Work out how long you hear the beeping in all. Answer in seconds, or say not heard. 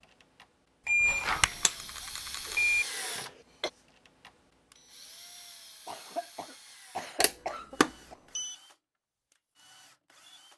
3 s.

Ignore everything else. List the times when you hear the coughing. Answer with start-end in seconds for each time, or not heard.
2.5-3.7, 5.8-8.2.